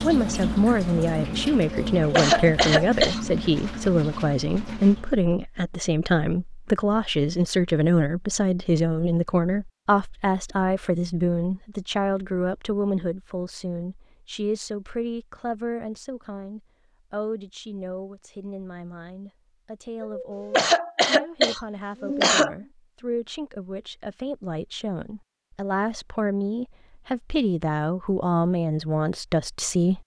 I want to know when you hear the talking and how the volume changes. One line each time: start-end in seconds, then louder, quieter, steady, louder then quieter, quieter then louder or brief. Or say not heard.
0.0-30.0 quieter then louder.